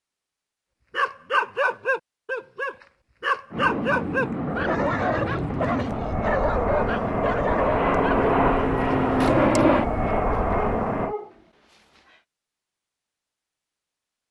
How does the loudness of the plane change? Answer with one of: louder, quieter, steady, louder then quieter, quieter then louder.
louder.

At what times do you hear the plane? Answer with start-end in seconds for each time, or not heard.
3.5-11.2.